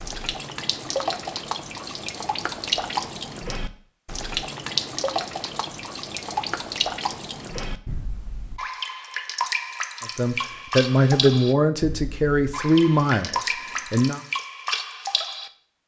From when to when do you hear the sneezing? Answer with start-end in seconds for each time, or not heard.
not heard.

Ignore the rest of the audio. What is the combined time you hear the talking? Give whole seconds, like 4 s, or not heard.
4 s.